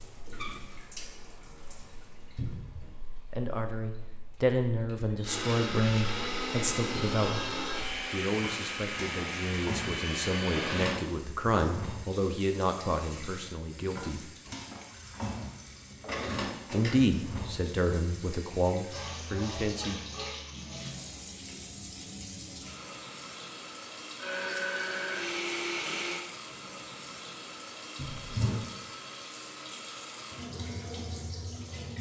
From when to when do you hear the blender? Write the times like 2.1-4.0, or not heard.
5.2-11.0, 24.2-26.2.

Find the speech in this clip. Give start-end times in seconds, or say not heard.
3.2-7.5, 8.1-14.3, 16.7-20.0.